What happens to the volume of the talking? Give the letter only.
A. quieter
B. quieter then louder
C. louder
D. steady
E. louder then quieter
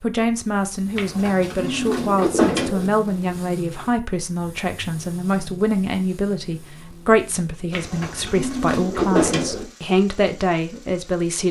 D.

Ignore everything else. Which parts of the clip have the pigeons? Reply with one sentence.
The pigeons can be heard from 0.9 to 2.9 s and from 7.7 to 9.7 s.